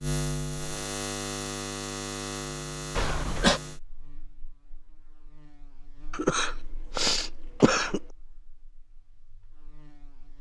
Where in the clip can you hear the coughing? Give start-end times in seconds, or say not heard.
3.0-3.6, 6.1-8.0.